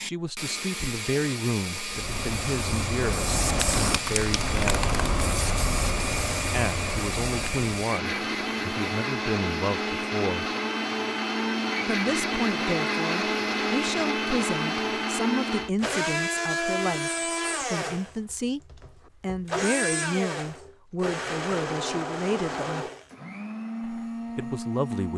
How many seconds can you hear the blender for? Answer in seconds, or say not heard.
25 s.